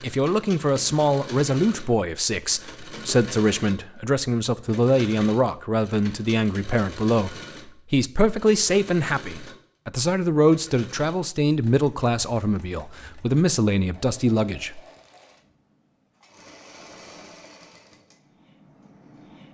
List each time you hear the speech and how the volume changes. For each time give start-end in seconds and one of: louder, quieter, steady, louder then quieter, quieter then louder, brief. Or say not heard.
0.0-14.8 steady.